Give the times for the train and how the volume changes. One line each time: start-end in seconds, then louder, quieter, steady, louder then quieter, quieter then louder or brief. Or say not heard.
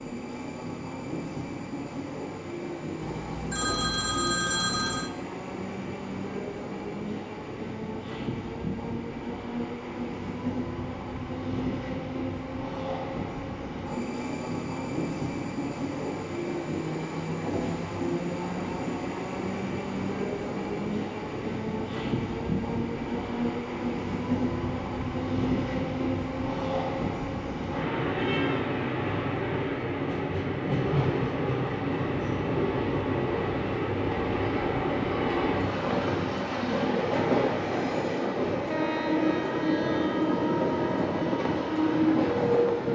0.0-42.9 louder.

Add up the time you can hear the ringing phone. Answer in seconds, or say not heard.
2 s.